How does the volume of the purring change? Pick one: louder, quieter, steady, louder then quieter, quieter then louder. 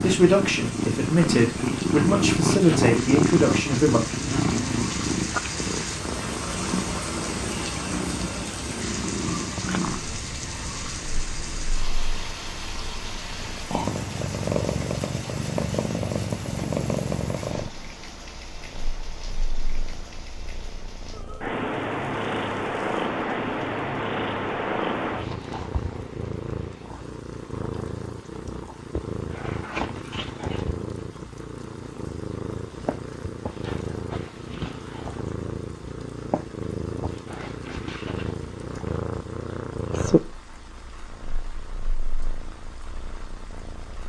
quieter.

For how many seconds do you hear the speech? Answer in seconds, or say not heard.
4 s.